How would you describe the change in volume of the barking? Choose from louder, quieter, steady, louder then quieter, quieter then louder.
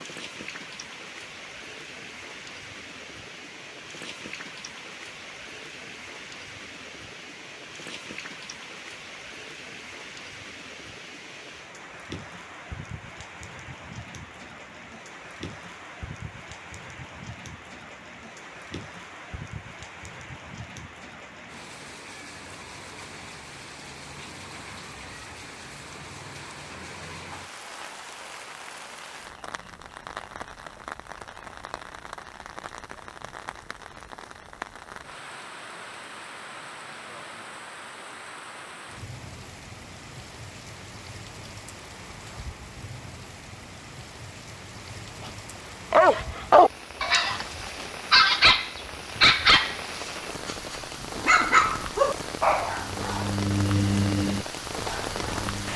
quieter.